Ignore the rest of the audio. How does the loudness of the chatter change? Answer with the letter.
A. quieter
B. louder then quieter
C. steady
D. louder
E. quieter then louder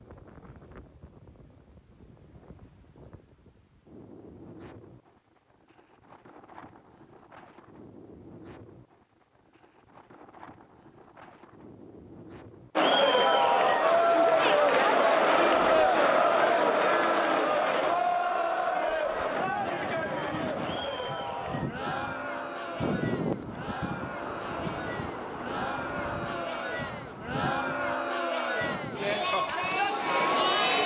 E.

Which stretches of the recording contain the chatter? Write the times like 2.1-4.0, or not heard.
12.8-30.8.